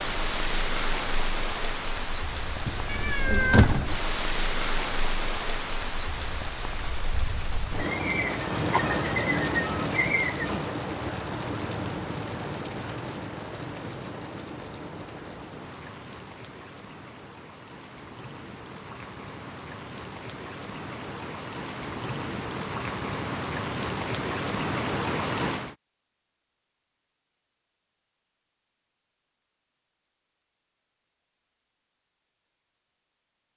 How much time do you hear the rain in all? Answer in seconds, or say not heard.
26 s.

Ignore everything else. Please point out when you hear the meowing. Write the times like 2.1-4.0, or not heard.
2.6-4.0.